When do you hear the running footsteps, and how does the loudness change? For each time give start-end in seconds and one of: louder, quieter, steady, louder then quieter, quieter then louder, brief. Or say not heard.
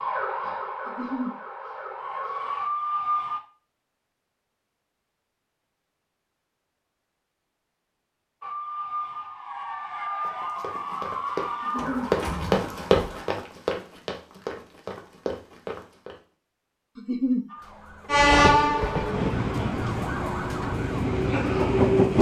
10.2-16.2 louder then quieter.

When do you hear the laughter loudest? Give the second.
17 s.